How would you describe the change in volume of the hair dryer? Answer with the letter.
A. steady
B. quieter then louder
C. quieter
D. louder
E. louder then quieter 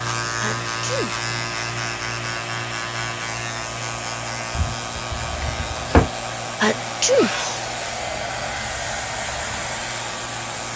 D.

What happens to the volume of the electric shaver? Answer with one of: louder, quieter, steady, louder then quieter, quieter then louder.
quieter.